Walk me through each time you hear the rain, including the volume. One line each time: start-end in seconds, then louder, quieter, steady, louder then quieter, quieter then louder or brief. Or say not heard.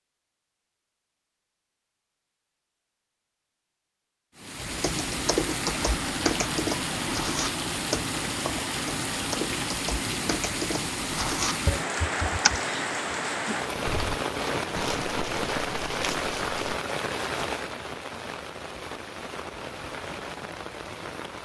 4.3-21.4 quieter.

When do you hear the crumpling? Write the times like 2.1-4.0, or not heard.
14.8-16.8.